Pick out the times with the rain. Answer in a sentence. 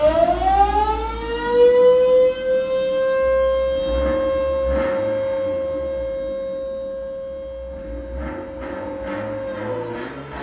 You can't hear the rain here.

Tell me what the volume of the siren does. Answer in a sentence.
The volume of the siren goes down.